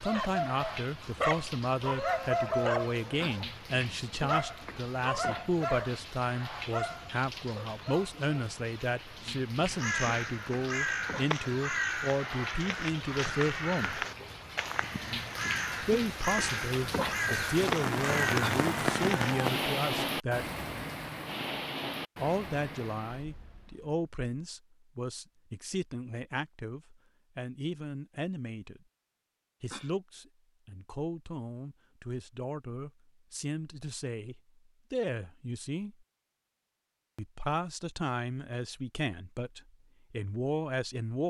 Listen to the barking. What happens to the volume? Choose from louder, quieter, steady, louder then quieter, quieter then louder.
quieter.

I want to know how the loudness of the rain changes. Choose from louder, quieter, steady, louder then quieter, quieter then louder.
louder.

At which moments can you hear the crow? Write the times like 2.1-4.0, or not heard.
9.7-19.4.